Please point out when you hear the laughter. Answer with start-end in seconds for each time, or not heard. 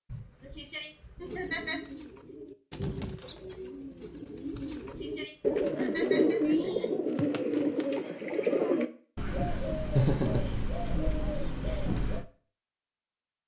0.1-1.8, 4.5-7.0, 9.9-10.6.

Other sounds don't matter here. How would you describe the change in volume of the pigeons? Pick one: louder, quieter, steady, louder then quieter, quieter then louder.
louder then quieter.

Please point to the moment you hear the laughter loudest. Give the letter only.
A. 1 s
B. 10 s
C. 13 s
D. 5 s
B.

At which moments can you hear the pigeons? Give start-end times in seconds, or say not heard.
1.2-12.2.